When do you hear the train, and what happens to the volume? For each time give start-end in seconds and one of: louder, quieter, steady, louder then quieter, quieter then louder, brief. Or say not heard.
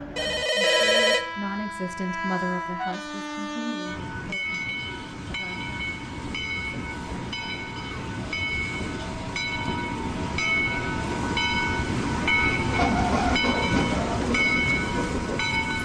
0.0-15.7 louder.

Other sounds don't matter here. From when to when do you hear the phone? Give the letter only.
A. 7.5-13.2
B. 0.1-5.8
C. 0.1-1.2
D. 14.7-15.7
C.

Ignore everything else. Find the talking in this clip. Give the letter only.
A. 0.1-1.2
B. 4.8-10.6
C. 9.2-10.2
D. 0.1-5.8
D.